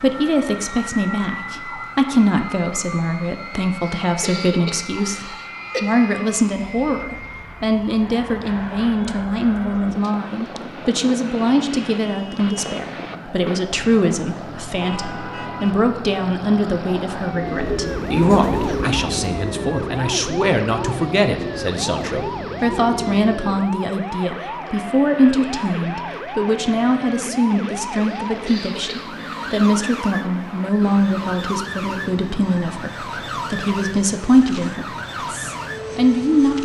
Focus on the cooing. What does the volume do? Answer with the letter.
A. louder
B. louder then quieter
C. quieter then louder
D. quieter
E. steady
D.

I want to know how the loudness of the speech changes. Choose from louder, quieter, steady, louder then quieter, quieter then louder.
steady.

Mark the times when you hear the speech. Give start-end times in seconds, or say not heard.
0.0-36.5.